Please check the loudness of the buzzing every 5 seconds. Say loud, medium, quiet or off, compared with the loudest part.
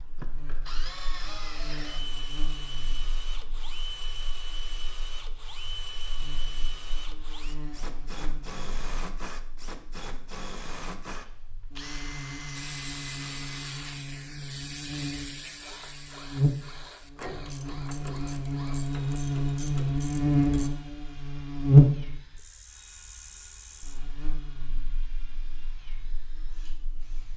quiet, quiet, quiet, medium, loud, quiet.